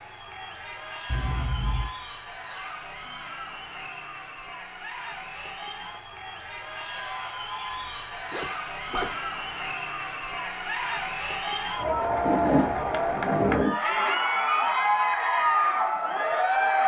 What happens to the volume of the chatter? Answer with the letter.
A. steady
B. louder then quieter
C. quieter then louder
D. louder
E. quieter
D.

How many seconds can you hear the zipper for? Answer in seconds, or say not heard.
3 s.